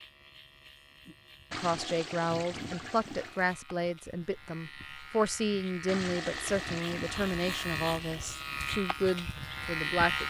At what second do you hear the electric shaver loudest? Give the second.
10 s.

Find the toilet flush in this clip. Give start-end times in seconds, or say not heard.
1.5-3.5, 5.8-8.4.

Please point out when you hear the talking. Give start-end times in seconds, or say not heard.
1.5-10.2.